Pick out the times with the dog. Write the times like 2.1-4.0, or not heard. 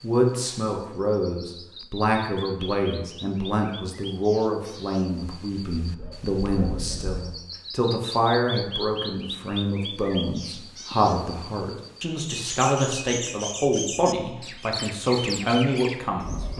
5.8-7.3.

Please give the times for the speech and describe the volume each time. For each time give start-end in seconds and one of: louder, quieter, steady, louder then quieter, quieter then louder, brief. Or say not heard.
0.0-16.5 steady.